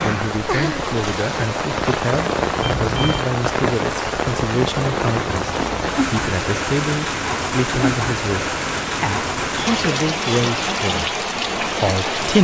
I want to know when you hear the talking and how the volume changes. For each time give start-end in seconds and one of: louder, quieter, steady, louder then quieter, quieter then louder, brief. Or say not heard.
0.0-12.3 steady.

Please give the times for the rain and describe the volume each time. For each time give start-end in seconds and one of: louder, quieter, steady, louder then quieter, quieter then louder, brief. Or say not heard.
0.0-12.3 steady.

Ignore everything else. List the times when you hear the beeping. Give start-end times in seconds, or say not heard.
2.6-3.3.